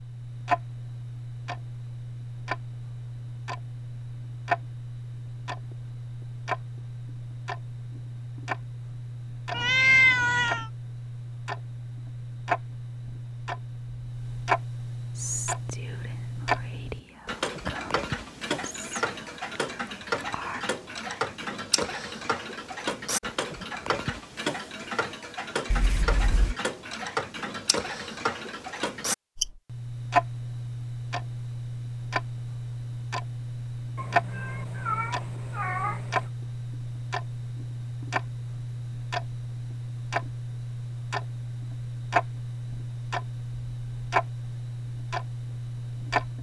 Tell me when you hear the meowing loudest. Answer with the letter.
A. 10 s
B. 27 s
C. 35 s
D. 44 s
A.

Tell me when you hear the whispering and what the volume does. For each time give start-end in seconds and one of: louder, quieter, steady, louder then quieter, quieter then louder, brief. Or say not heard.
15.2-20.6 louder then quieter.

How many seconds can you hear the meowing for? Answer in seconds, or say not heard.
4 s.